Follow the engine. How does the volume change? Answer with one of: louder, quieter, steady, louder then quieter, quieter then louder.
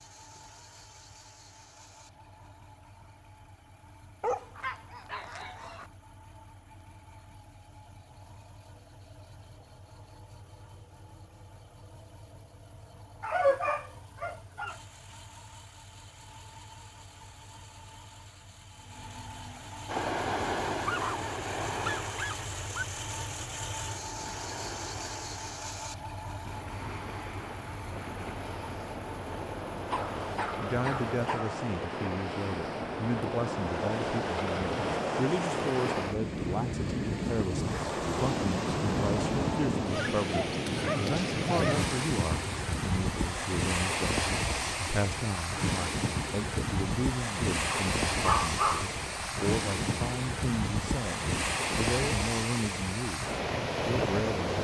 louder.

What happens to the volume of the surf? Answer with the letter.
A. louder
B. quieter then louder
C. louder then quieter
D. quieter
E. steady
A.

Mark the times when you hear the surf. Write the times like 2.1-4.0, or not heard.
19.9-54.5.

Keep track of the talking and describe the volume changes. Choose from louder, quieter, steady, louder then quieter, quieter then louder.
steady.